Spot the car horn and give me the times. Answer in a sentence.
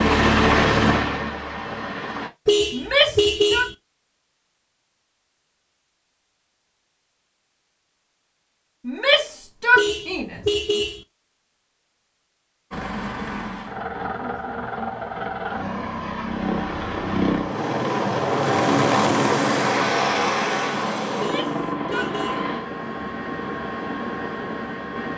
The car horn can be heard from 2.5 to 3.8 s, from 9.8 to 11.1 s and from 21.2 to 22.4 s.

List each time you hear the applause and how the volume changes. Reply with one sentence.
You can't hear the applause here.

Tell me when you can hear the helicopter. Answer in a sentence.
The helicopter can be heard from 0.0 to 2.3 s and from 12.7 to 25.1 s.